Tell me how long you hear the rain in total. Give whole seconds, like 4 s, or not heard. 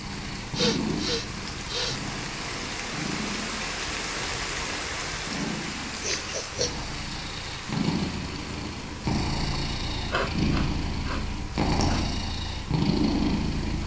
14 s.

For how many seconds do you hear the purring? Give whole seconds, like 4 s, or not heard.
14 s.